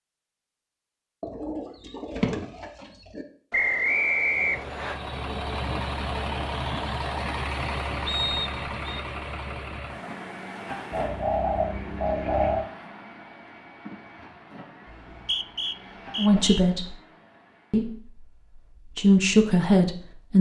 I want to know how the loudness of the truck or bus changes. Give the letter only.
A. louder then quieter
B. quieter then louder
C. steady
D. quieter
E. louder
D.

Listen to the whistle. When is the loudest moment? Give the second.
4 s.